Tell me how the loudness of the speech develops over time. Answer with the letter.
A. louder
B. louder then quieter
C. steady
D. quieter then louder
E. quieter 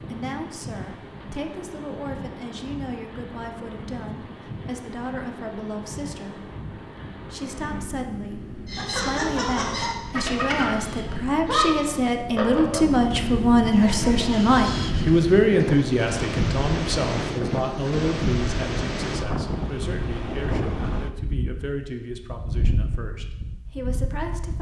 B.